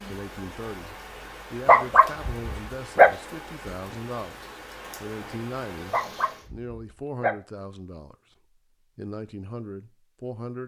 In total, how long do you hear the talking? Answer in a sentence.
You can hear the talking for 10 seconds altogether.